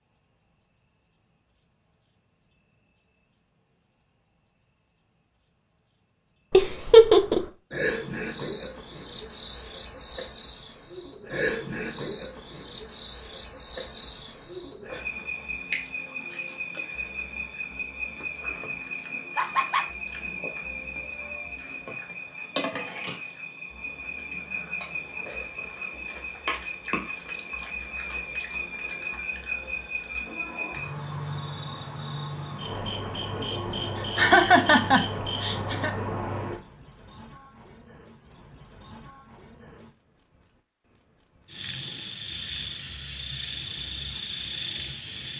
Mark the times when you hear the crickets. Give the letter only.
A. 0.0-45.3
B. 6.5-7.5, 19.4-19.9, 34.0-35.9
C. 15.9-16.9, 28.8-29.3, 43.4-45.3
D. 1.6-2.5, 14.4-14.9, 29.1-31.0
A.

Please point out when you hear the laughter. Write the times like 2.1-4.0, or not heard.
6.5-7.5, 19.4-19.9, 34.0-35.9.